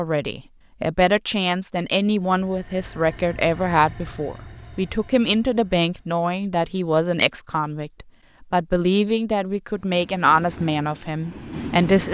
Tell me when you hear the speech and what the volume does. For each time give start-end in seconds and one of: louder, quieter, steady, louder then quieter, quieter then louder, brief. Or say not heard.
0.0-12.0 steady.